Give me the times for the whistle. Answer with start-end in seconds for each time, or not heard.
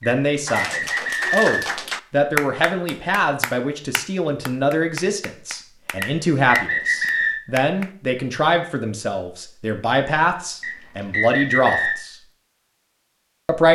0.0-1.9, 6.0-7.4, 10.6-12.0.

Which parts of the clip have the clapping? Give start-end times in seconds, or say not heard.
0.5-7.9.